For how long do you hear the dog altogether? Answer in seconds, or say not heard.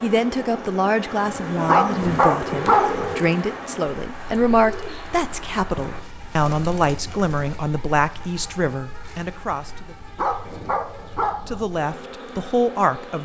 3 s.